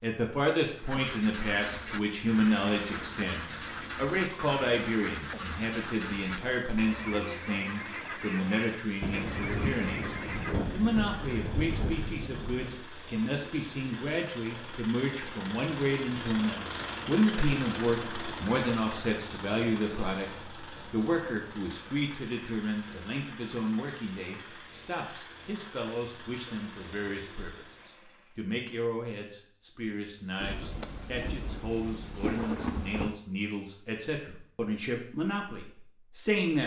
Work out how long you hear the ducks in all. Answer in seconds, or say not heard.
10 s.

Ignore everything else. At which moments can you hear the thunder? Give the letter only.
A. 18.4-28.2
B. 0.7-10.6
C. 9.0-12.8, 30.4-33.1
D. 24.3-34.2
C.